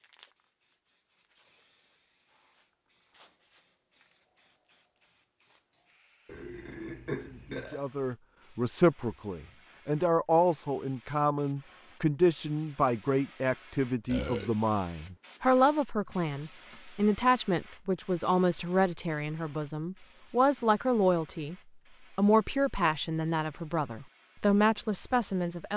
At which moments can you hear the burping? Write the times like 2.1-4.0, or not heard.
6.2-7.8, 14.1-14.5.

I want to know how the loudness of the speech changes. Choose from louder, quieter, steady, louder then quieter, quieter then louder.
steady.